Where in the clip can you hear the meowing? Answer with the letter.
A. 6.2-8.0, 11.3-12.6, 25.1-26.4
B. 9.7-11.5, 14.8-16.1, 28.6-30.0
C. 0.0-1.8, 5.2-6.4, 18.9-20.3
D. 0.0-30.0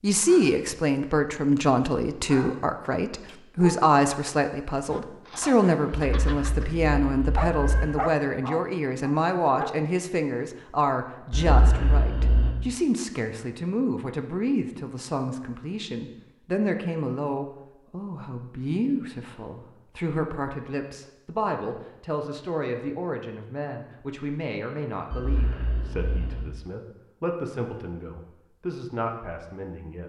A.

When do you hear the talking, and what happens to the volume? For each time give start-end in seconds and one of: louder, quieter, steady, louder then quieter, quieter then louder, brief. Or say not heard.
0.0-30.0 quieter.